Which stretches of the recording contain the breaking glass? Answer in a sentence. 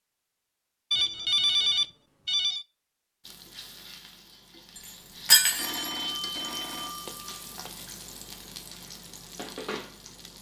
The breaking glass can be heard from 5.2 to 5.9 s.